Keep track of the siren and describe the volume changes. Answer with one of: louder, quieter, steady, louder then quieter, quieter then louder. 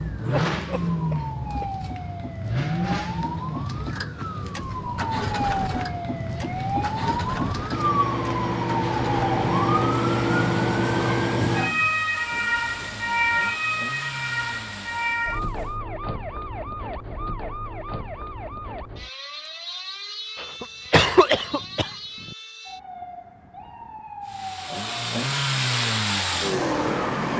louder then quieter.